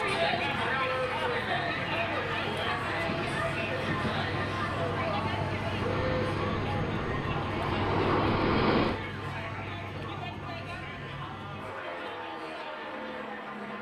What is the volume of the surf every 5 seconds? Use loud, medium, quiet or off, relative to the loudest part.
medium, loud, off.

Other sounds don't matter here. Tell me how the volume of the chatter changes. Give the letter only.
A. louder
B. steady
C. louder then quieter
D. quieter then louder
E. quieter
E.